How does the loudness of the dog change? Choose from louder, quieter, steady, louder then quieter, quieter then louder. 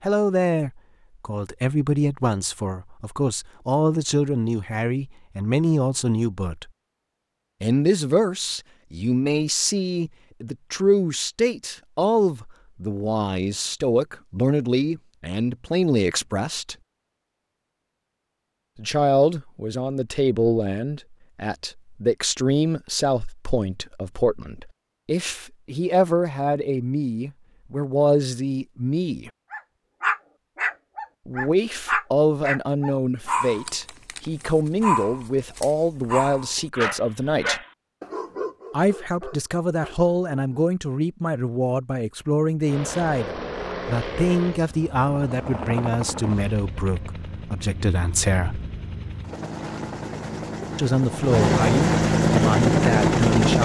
quieter.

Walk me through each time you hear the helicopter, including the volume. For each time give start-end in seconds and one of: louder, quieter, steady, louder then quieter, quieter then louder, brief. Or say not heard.
42.6-53.5 quieter then louder.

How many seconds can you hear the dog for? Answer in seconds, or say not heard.
11 s.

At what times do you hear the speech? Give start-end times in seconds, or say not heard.
0.0-6.7, 7.6-16.8, 18.8-29.3, 31.2-37.6, 38.7-48.6, 50.8-53.5.